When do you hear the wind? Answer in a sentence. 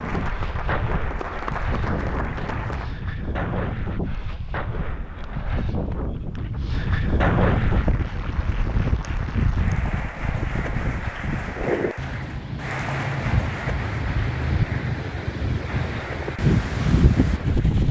The wind can be heard from 0.0 to 17.8 s.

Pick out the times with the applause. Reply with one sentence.
You can hear the applause from 0.0 to 3.0 s and from 7.7 to 17.8 s.